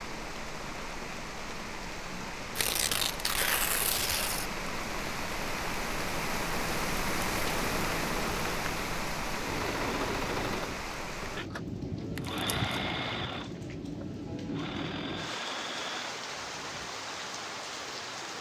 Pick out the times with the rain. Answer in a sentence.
The rain can be heard from 0.0 to 18.3 s.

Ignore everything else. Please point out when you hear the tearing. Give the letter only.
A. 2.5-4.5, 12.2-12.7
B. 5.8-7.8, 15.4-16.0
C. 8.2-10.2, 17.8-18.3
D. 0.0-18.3
A.